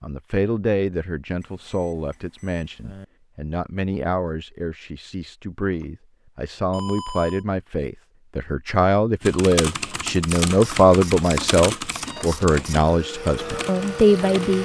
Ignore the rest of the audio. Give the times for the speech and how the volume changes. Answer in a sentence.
The speech can be heard from 0.0 to 14.6 s, getting louder.